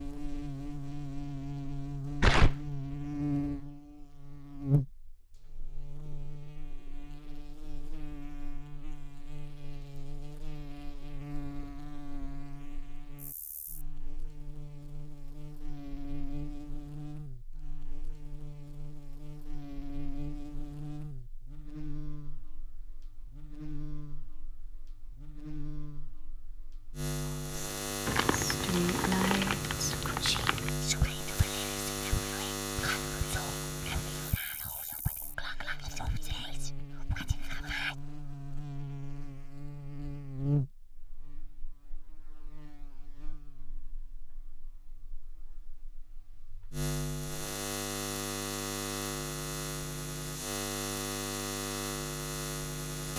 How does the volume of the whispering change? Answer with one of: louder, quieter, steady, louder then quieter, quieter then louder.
quieter.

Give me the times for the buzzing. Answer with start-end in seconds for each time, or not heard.
0.0-53.1.